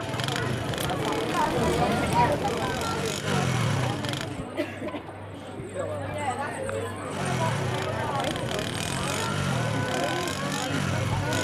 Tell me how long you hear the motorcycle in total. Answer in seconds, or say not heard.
9 s.